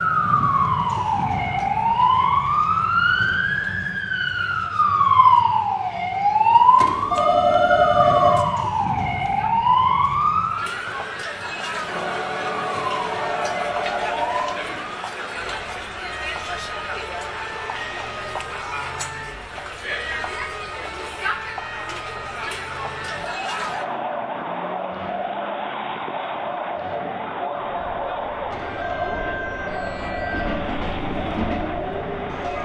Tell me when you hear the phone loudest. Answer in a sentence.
The loudest moment of the phone is at 8 seconds.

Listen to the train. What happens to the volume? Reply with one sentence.
The volume of the train goes up.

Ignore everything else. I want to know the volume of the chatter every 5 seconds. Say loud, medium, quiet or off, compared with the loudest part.
quiet, quiet, loud, loud, loud, loud, loud.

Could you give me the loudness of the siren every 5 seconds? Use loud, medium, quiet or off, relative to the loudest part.
loud, loud, medium, quiet, quiet, quiet, quiet.